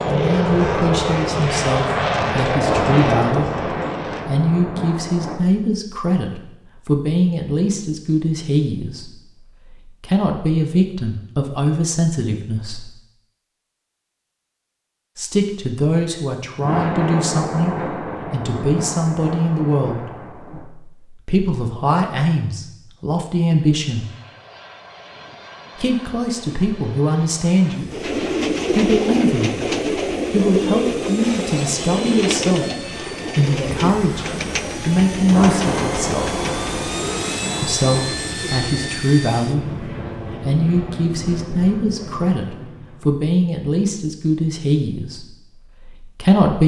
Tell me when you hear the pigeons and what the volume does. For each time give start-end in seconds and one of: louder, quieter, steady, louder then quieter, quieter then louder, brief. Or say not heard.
27.9-39.1 quieter.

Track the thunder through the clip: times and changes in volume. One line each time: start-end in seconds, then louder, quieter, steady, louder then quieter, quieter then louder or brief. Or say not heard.
2.6-5.4 brief
16.6-20.6 quieter
35.2-38.0 brief.